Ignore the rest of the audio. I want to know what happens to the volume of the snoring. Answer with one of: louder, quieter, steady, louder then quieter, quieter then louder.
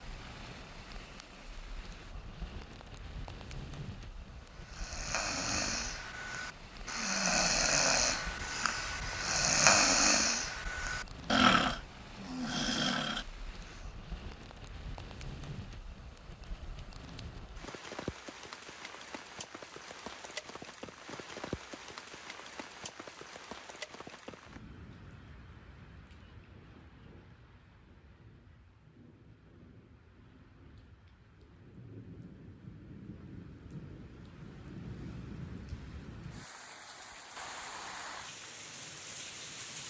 louder.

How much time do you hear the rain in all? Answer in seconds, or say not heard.
40 s.